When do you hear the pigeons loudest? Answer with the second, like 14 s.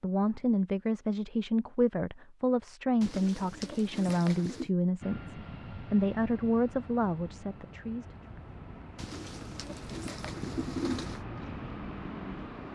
11 s.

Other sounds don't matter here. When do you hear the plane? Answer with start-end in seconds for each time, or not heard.
5.0-12.7.